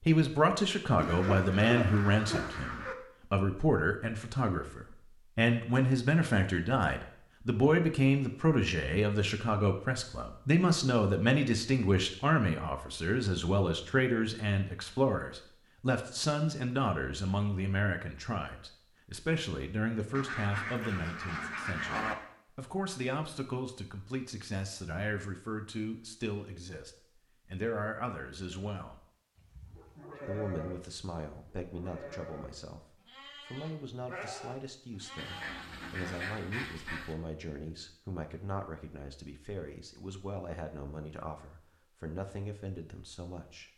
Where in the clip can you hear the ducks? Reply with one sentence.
The ducks can be heard from 0.9 to 3.0 s, from 20.1 to 22.1 s and from 35.1 to 37.1 s.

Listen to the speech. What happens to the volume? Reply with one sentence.
The loudness of the speech goes down.